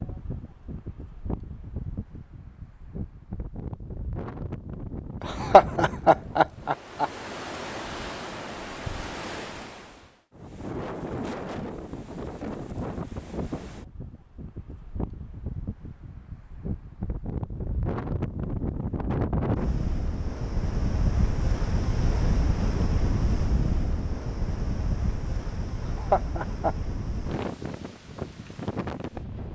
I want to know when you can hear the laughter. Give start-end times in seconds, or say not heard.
5.2-7.0, 25.8-26.8.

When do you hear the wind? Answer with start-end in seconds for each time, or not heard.
0.0-29.5.